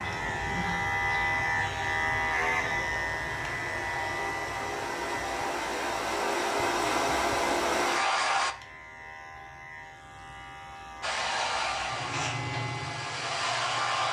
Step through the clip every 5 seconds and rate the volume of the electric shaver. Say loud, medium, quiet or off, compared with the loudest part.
loud, quiet, medium.